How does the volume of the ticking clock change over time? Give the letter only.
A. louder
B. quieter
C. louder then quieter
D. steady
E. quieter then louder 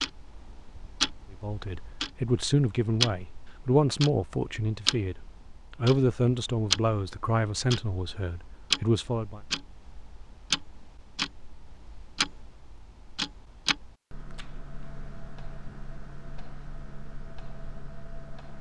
B.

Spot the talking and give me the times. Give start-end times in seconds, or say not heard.
1.3-5.2, 5.8-9.4.